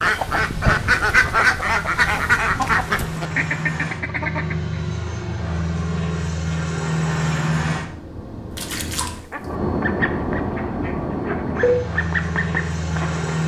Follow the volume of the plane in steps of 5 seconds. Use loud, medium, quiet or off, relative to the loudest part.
medium, loud, loud.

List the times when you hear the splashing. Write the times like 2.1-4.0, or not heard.
8.5-9.5.